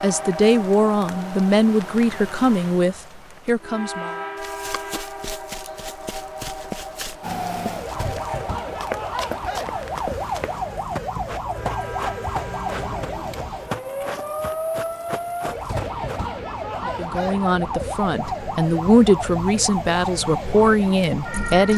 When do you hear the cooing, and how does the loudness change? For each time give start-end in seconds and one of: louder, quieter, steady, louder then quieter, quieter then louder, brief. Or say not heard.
not heard.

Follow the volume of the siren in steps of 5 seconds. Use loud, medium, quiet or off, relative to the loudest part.
off, loud, loud, loud, loud.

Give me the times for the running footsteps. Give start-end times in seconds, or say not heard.
4.3-16.2.